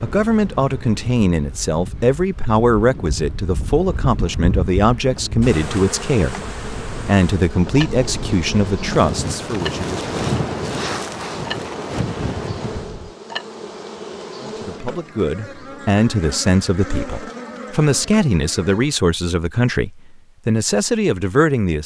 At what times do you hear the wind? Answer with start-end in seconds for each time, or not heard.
0.0-13.2.